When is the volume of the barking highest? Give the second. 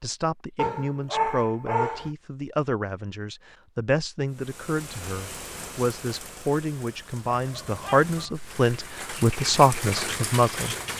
1 s.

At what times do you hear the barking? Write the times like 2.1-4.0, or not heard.
0.6-2.1, 7.3-8.3.